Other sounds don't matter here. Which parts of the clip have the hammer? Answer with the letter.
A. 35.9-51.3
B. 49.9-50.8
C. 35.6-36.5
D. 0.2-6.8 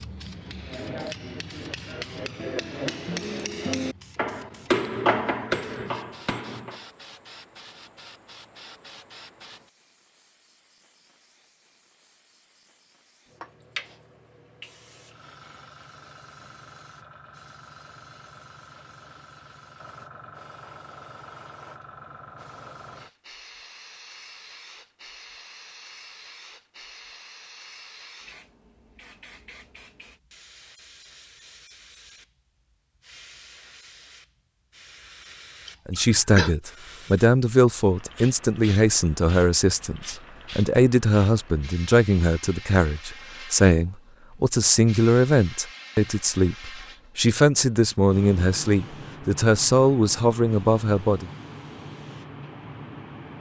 D.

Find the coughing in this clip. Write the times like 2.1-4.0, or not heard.
35.6-36.5.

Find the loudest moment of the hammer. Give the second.
5 s.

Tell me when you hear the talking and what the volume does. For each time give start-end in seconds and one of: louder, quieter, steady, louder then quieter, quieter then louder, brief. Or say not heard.
35.9-51.3 steady.